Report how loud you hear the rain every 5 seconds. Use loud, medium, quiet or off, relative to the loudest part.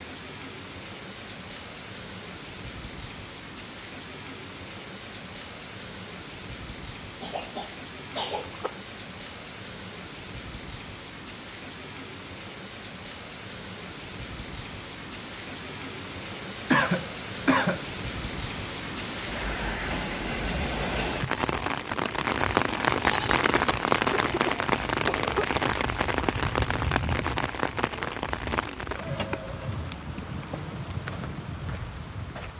quiet, quiet, quiet, medium, loud, loud, medium.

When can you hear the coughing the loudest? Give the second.
17 s.